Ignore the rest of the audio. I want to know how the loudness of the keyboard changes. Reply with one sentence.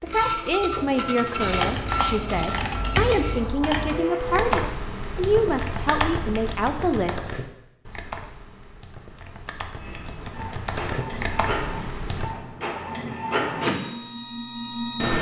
The volume of the keyboard goes down, then up.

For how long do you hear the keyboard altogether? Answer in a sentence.
You can hear the keyboard for 11 seconds altogether.